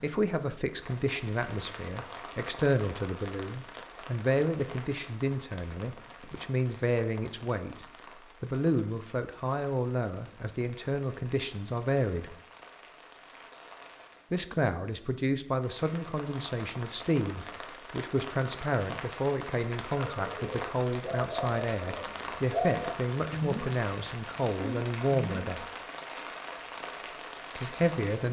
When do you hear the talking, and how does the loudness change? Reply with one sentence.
You can hear the talking from 0.0 to 12.3 s, at a steady volume; from 14.3 to 25.7 s, at a steady volume; and briefly from 27.6 to 28.2 s.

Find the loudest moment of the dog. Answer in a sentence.
The volume of the dog peaks at 23 seconds.